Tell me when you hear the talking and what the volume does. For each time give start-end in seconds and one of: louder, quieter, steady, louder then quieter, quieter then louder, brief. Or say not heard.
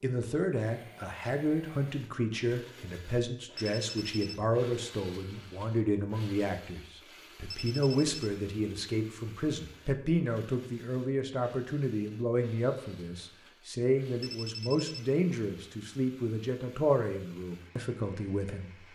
0.0-18.8 steady.